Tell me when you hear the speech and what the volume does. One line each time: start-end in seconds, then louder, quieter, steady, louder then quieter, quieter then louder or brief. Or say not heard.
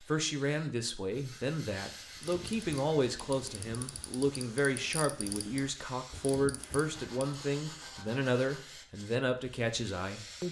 0.0-10.4 steady.